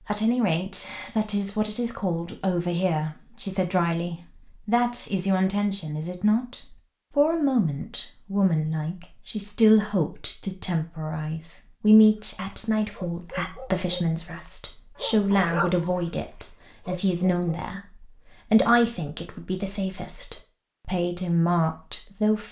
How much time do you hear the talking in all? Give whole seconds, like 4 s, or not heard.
22 s.